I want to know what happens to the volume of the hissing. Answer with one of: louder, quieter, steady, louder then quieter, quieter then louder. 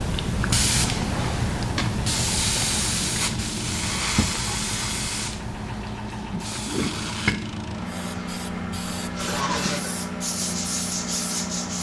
quieter.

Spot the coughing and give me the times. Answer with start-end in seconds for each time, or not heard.
9.2-10.0.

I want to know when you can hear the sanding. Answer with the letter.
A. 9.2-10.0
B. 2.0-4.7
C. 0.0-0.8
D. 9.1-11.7
D.